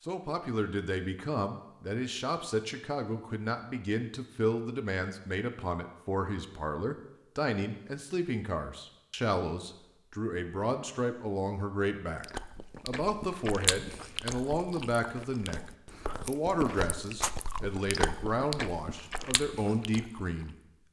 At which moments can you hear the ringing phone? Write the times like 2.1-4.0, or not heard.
not heard.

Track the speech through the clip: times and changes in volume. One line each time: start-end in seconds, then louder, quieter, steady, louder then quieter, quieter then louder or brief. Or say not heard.
0.0-20.8 steady.